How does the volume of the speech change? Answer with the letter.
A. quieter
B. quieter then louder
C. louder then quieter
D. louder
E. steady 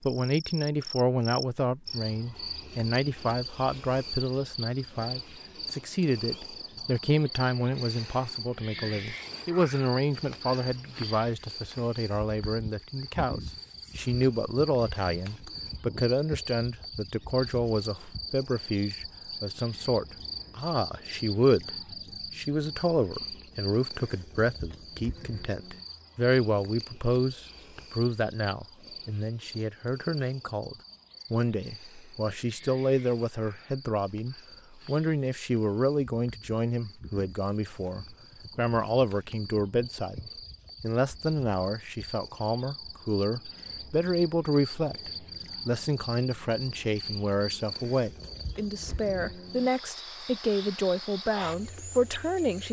E.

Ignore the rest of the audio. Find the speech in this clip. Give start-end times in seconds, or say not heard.
0.0-21.7, 22.4-52.6.